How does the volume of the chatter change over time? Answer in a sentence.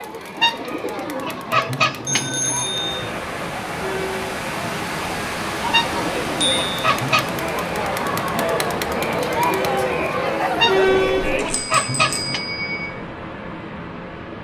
The volume of the chatter goes up.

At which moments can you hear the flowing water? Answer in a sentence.
The flowing water can be heard from 2.5 to 14.3 s.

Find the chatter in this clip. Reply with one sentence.
You can hear the chatter from 0.0 to 11.6 s.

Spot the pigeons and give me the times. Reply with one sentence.
You can hear the pigeons from 0.3 to 2.9 s, from 5.7 to 7.5 s and from 10.6 to 12.4 s.